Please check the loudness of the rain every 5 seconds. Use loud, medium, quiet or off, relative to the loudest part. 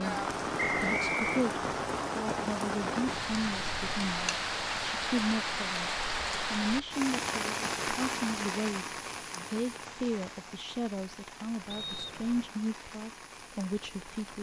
loud, loud, quiet.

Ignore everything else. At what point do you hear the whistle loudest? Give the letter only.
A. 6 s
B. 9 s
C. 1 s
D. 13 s
C.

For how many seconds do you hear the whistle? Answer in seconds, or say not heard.
2 s.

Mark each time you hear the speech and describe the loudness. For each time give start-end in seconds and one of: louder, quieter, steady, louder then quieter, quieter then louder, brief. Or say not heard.
0.0-14.3 steady.